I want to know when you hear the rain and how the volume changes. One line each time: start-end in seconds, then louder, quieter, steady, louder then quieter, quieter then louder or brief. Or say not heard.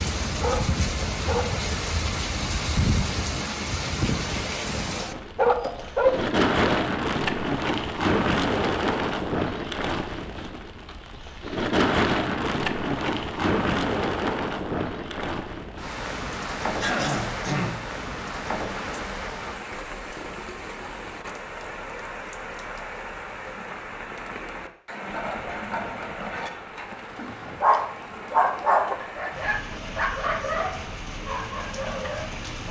0.0-32.6 quieter.